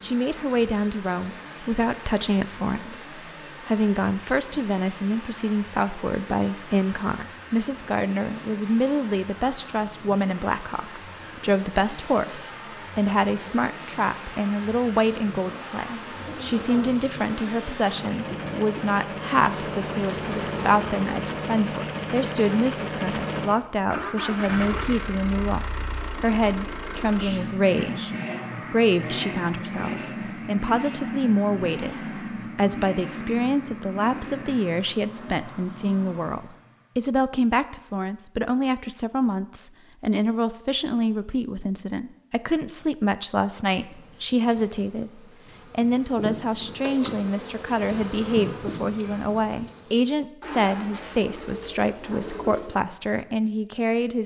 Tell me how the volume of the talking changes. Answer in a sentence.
The volume of the talking stays about the same.